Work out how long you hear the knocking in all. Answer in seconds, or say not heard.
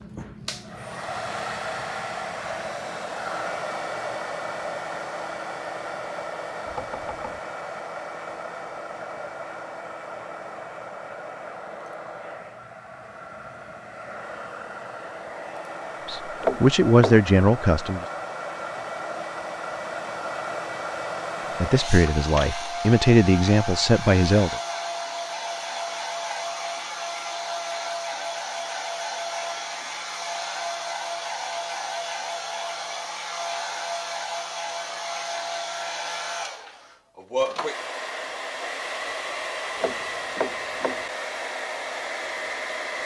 3 s.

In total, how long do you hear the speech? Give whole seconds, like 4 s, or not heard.
5 s.